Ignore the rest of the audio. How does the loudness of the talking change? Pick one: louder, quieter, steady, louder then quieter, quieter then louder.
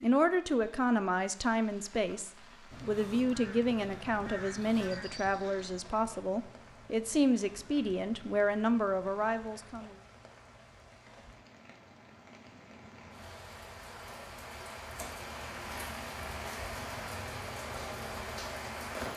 steady.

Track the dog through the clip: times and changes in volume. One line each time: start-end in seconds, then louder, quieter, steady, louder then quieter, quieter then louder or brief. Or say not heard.
not heard.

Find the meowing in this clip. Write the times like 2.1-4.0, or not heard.
not heard.